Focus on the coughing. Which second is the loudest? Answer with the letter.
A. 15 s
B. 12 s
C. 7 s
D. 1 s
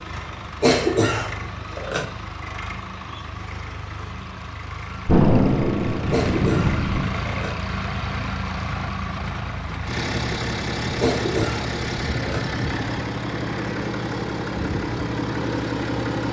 D.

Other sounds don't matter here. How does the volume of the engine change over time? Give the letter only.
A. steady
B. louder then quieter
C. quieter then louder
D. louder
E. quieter
D.